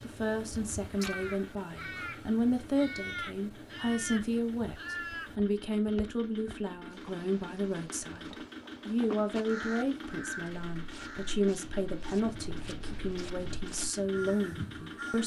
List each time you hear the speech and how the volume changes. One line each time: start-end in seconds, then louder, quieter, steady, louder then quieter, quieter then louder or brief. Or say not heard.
0.0-15.2 steady.